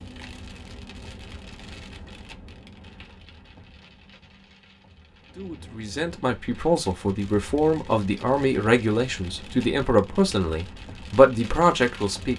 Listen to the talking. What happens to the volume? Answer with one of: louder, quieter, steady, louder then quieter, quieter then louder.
louder.